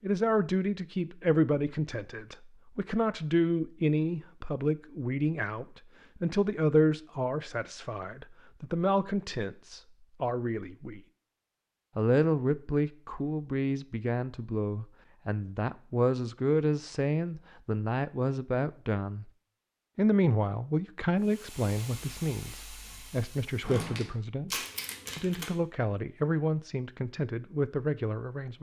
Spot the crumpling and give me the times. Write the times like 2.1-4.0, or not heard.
24.5-25.5.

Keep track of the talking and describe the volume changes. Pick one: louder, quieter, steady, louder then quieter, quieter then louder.
steady.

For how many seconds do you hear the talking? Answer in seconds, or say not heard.
26 s.